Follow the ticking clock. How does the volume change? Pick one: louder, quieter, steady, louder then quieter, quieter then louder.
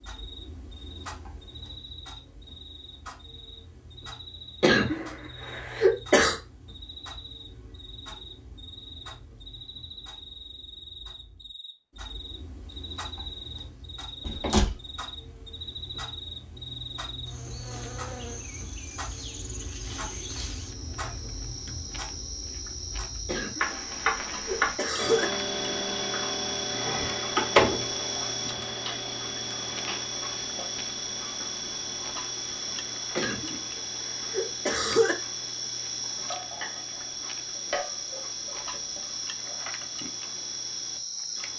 louder then quieter.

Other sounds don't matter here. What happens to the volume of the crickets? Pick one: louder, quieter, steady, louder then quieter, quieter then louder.
louder.